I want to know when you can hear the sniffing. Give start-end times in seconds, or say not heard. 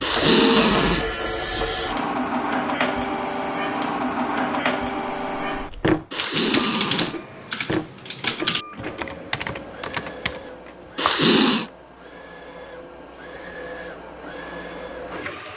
0.0-1.1, 6.1-7.2, 10.9-11.7.